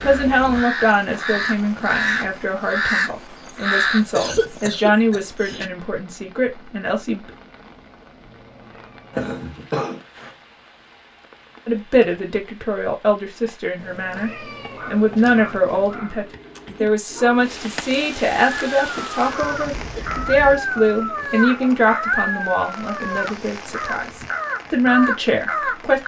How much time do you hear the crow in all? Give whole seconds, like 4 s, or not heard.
12 s.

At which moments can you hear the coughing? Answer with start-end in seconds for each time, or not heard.
4.2-5.7, 9.2-10.3, 19.7-20.6.